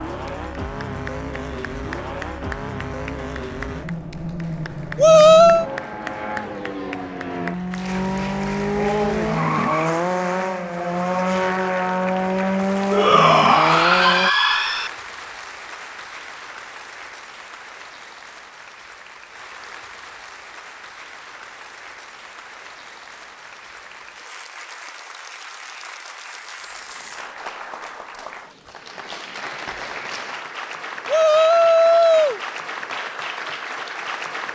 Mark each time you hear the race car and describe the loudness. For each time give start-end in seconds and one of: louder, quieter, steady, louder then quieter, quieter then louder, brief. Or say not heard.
0.0-14.3 louder.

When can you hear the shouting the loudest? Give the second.
5 s.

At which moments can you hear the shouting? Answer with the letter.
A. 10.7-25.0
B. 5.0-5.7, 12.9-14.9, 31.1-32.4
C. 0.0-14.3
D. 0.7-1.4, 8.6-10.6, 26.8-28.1
B.